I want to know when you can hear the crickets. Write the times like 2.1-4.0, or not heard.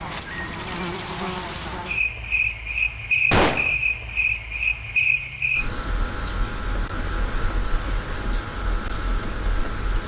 0.0-10.0.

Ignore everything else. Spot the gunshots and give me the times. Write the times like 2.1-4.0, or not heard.
3.3-3.8.